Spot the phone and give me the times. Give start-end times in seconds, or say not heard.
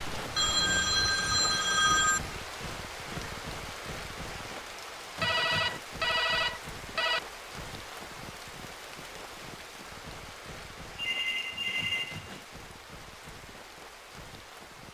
0.3-2.3, 5.2-7.2, 10.9-12.4.